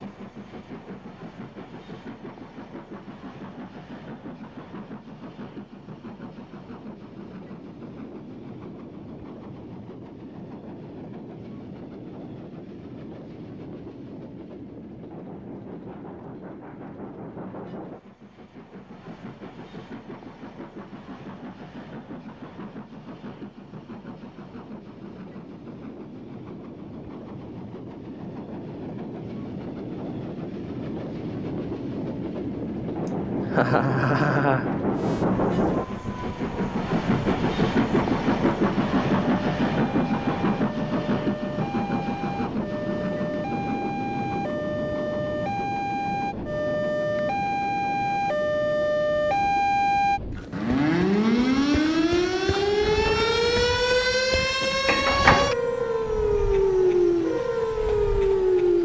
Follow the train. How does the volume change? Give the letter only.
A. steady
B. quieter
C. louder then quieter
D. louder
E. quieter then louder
C.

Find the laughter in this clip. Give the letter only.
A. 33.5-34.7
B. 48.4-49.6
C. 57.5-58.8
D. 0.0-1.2
A.